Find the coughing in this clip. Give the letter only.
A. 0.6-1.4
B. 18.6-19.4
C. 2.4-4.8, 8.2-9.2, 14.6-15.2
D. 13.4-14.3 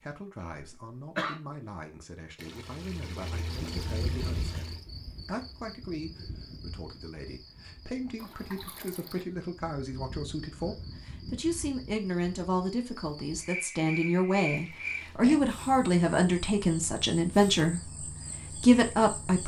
A.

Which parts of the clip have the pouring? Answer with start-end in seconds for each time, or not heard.
2.4-4.8, 8.2-9.2, 14.6-15.2.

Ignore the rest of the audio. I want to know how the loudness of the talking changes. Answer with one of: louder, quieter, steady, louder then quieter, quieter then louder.
louder.